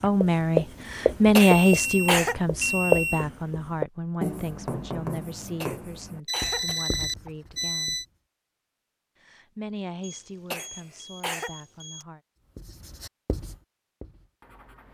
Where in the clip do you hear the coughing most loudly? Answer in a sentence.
The loudest moment of the coughing is at 2 seconds.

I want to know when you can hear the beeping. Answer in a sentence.
You can hear the beeping from 1.4 to 3.2 s, from 6.2 to 8.1 s and from 10.0 to 12.1 s.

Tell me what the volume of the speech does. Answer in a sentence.
The loudness of the speech goes down.